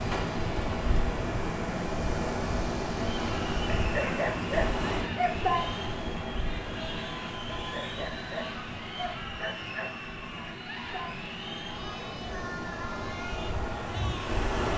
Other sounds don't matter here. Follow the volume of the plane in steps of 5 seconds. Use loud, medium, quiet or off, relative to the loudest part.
loud, medium, medium.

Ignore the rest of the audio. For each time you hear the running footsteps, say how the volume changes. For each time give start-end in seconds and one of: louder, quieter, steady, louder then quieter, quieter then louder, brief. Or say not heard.
not heard.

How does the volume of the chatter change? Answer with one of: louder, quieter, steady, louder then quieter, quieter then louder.
steady.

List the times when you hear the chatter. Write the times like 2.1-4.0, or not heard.
3.1-14.7.